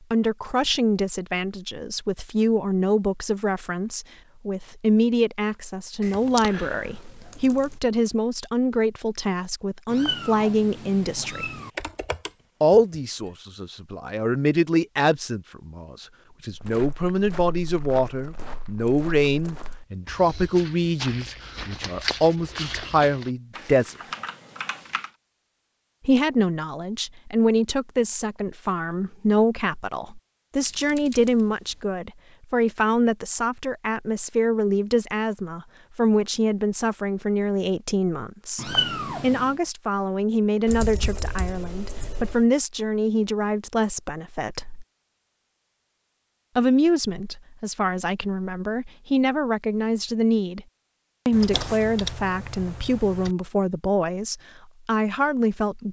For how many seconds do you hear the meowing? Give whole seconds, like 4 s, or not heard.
3 s.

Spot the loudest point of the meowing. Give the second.
39 s.